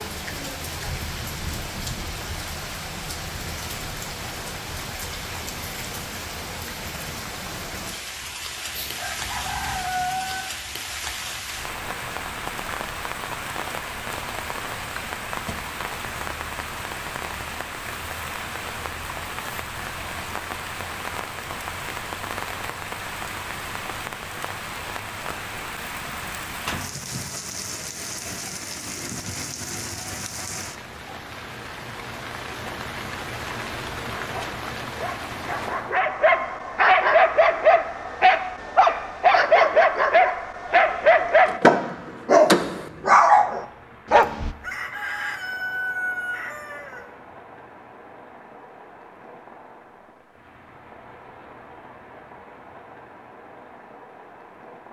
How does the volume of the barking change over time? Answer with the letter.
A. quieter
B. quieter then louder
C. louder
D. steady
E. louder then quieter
C.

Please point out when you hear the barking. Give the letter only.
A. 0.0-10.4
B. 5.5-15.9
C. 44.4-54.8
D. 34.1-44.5
D.